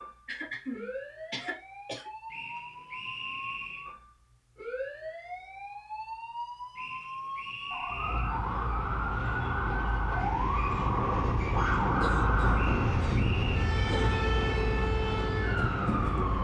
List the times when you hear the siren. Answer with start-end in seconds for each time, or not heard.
0.0-16.3.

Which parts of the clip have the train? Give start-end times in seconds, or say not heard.
7.8-16.3.